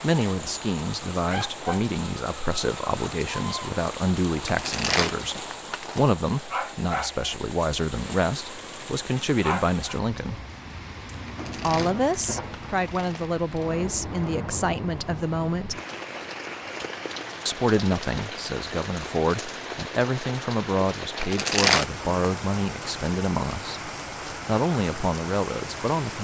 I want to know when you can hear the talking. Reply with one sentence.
The talking can be heard from 0.0 to 10.4 s, from 11.6 to 15.8 s and from 17.4 to 26.1 s.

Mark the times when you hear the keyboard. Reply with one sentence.
The keyboard can't be heard in this clip.